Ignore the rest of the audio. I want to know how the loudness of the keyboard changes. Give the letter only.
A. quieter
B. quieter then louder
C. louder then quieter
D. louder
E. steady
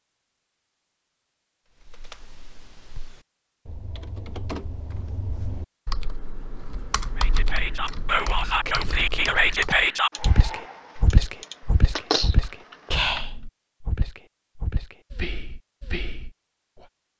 D.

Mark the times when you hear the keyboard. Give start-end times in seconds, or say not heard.
1.8-13.2.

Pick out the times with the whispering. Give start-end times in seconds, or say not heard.
7.2-16.9.